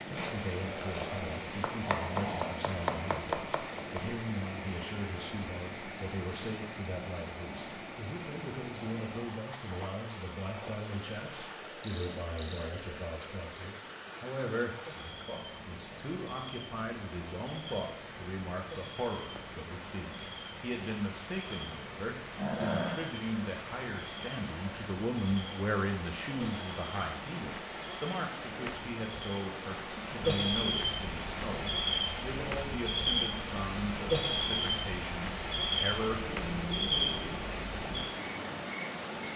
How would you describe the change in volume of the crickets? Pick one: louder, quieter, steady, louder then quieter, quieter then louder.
louder.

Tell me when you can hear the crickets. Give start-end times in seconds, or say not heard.
11.8-39.3.